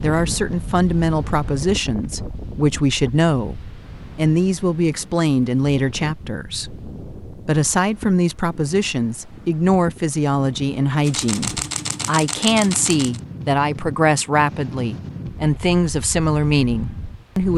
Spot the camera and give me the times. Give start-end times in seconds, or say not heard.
11.1-13.2.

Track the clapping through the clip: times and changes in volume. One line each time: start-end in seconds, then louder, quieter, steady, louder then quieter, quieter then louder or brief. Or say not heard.
not heard.